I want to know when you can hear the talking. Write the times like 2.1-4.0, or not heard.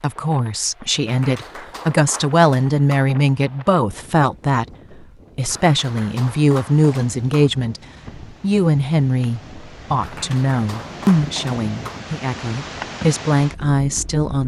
0.0-4.7, 5.3-7.8, 8.4-14.4.